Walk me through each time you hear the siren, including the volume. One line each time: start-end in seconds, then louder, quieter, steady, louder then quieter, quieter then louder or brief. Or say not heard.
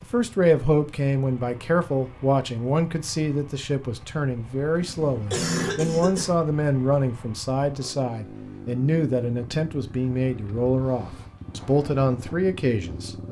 not heard.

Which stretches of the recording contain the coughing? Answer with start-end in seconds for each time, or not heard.
4.8-6.3.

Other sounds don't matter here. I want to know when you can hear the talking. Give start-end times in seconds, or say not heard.
0.0-13.2.